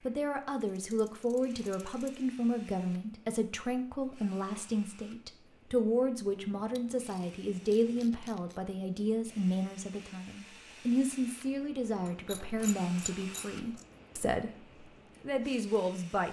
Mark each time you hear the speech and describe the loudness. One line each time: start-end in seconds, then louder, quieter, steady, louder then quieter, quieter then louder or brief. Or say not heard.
0.1-16.2 steady.